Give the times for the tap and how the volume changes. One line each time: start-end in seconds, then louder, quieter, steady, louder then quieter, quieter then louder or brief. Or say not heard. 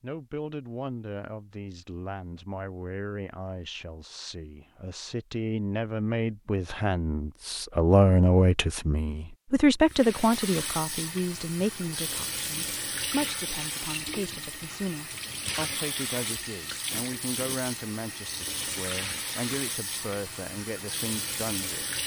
9.8-22.0 steady.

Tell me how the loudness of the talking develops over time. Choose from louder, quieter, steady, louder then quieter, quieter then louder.
louder then quieter.